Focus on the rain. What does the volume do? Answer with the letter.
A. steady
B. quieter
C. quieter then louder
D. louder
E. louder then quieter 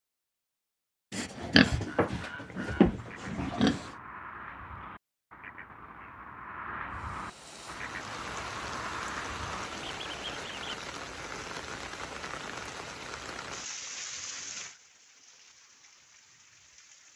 B.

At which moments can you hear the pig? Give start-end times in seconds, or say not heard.
1.1-3.9.